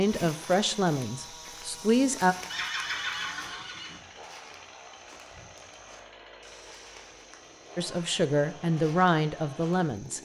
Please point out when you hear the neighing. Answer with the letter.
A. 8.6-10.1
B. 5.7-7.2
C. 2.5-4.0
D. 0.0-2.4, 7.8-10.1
C.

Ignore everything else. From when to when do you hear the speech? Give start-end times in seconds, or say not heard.
0.0-2.4, 7.8-10.1.